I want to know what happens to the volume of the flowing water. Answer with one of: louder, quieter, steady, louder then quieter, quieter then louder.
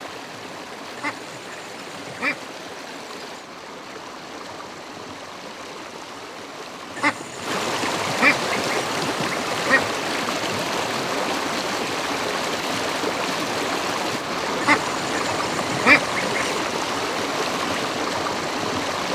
louder.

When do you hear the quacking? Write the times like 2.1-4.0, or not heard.
0.9-2.4, 7.0-9.9, 14.6-16.6.